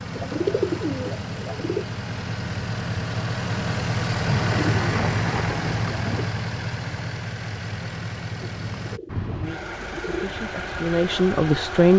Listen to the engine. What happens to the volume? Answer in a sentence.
The volume of the engine goes up, then down.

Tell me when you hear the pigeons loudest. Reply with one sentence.
The loudest moment of the pigeons is at 1 second.